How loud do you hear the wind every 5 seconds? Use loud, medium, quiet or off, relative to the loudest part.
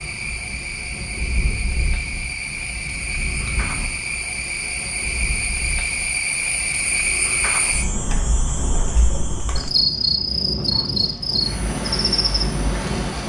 medium, medium, loud.